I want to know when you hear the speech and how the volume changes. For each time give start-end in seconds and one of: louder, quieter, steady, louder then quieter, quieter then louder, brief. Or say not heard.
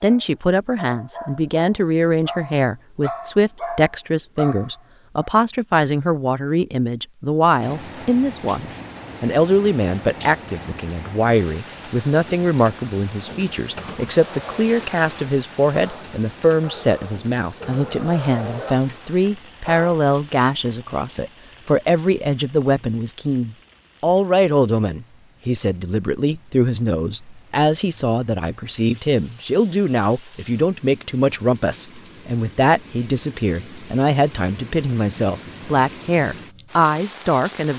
0.0-37.7 steady.